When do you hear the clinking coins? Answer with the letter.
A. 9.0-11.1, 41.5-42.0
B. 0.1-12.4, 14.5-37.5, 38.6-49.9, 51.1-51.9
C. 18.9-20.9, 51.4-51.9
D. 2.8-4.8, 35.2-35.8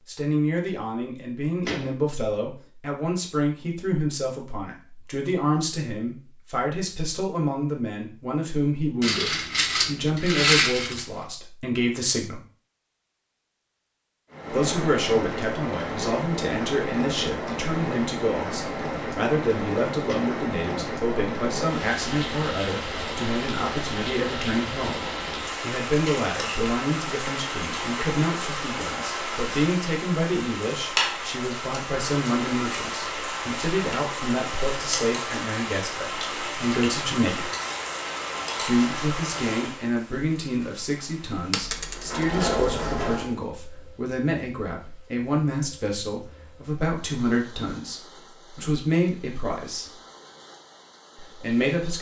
A.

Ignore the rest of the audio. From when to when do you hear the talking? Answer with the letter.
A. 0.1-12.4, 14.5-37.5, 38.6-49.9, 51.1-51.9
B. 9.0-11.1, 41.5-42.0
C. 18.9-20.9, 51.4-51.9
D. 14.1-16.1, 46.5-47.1
A.